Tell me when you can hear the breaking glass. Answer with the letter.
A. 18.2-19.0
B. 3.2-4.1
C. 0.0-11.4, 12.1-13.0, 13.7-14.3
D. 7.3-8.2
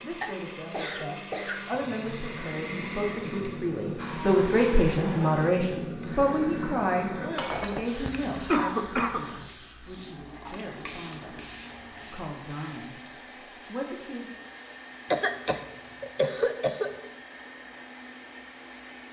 D.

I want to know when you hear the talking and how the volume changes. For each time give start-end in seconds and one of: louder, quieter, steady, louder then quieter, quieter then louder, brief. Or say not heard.
0.0-11.4 louder then quieter
12.1-13.0 brief
13.7-14.3 brief.